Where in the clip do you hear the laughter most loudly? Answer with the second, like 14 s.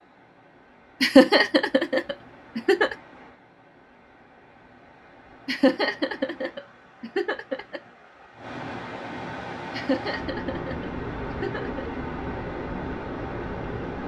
1 s.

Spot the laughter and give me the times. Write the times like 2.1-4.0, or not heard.
1.0-3.0, 5.5-7.8, 9.7-11.9.